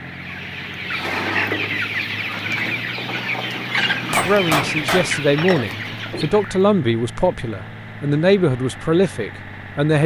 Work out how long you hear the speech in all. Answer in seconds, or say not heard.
6 s.